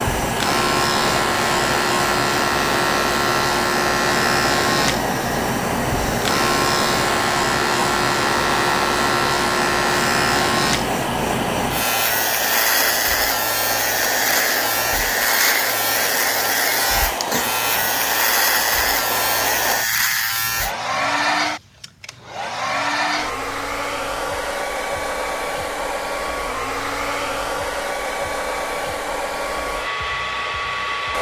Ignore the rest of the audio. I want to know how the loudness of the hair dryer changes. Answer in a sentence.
The volume of the hair dryer stays about the same.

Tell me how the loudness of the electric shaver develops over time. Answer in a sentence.
The loudness of the electric shaver stays about the same.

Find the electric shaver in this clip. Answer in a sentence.
The electric shaver can be heard from 0.0 to 20.8 s.